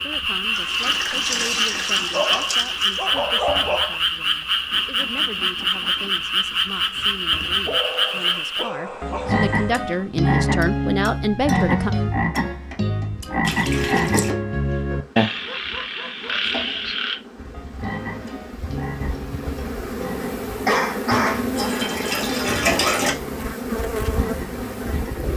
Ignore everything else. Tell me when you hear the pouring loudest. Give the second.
23 s.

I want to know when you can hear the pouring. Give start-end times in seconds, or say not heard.
0.5-3.0, 13.4-14.3, 21.1-23.1.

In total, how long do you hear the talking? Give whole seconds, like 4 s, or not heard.
12 s.